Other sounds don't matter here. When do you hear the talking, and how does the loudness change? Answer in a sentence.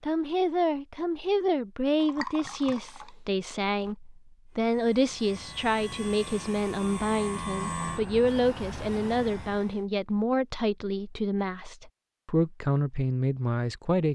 The talking can be heard from 0.0 to 14.1 s, at a steady volume.